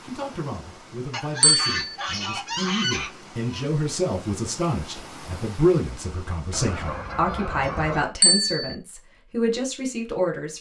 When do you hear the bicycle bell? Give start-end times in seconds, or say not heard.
1.4-1.9, 8.2-8.8.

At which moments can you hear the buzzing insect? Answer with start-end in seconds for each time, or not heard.
not heard.